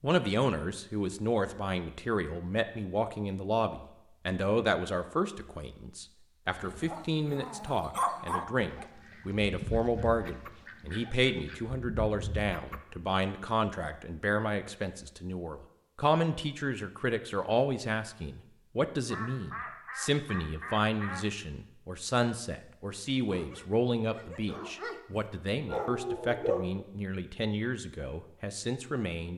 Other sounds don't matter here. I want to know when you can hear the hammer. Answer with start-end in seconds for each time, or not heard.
not heard.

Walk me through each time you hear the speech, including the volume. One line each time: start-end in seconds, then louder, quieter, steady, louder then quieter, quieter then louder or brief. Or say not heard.
0.0-29.3 steady.